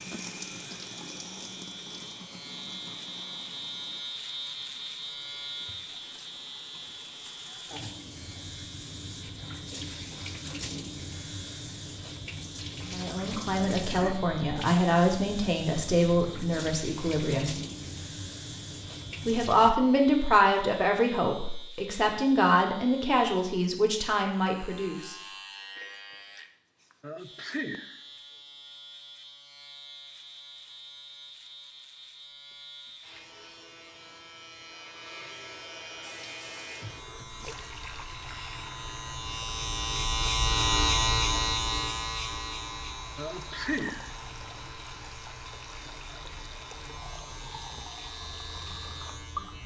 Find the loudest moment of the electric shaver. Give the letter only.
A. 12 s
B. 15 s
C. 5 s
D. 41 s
D.